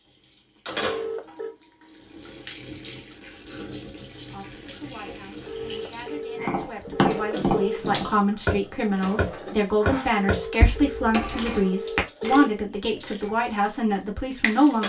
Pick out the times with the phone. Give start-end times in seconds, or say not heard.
0.8-1.6, 5.5-8.0, 10.2-12.5.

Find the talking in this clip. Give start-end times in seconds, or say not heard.
4.3-14.8.